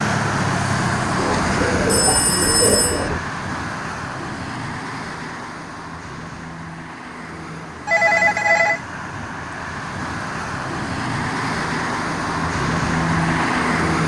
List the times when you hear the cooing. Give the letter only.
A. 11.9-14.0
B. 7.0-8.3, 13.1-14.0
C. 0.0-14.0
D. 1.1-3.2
D.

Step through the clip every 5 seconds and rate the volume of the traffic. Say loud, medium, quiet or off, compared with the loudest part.
loud, medium, loud.